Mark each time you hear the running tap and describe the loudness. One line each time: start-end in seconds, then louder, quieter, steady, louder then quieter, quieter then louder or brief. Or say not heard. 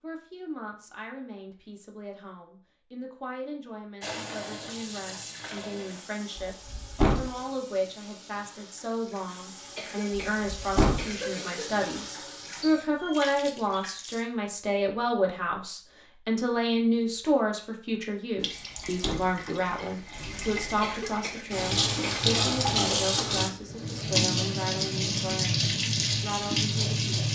4.0-14.2 quieter then louder
18.4-27.3 louder.